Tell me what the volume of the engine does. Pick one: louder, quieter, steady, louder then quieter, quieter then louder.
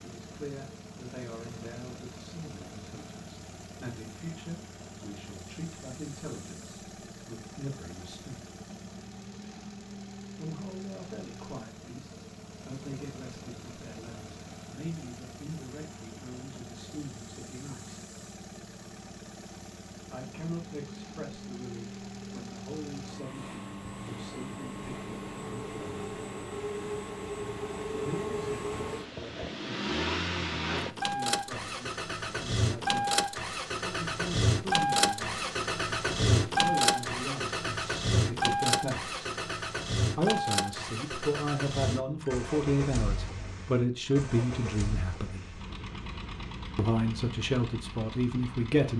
louder then quieter.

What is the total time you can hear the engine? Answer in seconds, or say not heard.
49 s.